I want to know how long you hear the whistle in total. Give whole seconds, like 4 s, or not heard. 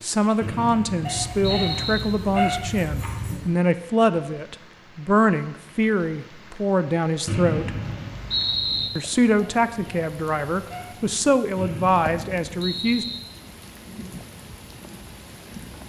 5 s.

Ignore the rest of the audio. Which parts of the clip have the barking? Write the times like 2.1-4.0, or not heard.
1.1-3.5, 9.3-11.2.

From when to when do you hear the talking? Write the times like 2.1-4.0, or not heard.
0.0-7.8, 8.9-13.1.